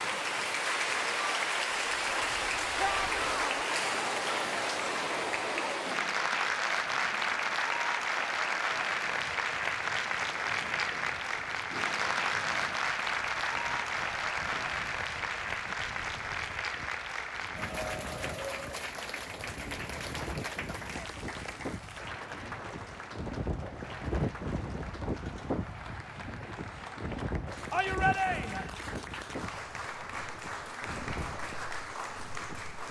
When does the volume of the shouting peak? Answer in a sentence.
The loudest moment of the shouting is at 28 seconds.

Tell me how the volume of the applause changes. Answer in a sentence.
The loudness of the applause goes down.